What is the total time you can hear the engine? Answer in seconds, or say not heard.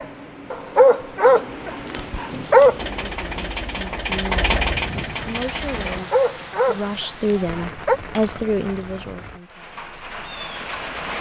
3 s.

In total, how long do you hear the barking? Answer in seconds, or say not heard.
4 s.